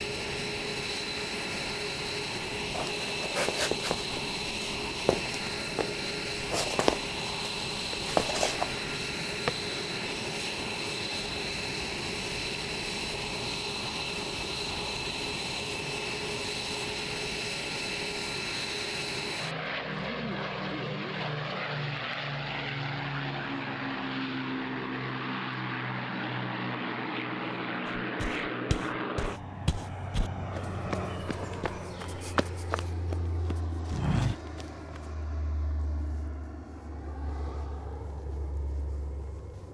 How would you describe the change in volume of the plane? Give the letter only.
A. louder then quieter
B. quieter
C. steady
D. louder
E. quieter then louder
B.